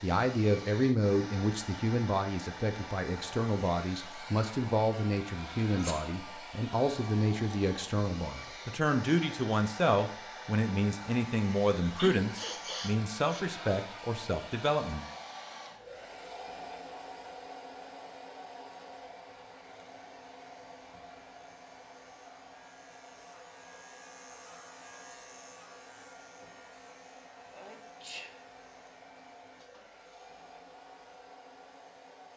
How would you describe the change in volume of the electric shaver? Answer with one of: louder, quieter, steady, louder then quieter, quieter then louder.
louder then quieter.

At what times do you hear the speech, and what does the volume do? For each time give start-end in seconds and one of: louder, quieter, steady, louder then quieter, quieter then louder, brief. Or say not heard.
0.0-15.1 steady.